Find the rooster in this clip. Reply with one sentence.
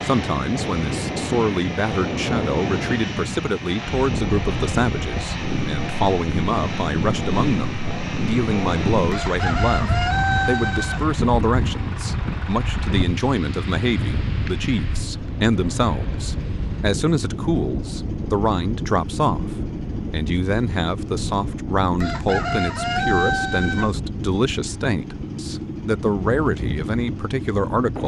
You can hear the rooster from 9.1 to 11.0 s and from 22.0 to 23.9 s.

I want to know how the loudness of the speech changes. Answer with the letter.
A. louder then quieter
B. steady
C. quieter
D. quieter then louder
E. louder
B.